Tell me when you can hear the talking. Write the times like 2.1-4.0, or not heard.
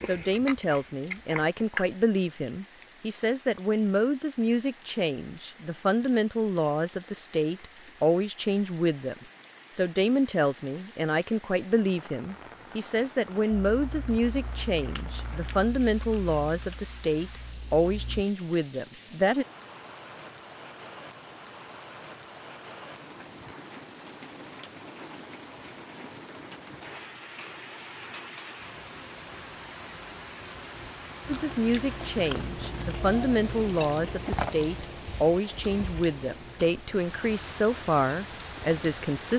0.0-19.4, 31.2-39.3.